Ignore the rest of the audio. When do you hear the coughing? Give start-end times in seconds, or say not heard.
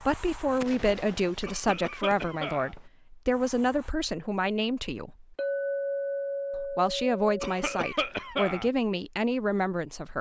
1.4-2.8, 7.4-8.7.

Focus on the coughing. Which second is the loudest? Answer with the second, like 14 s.
8 s.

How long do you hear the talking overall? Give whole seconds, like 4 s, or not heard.
9 s.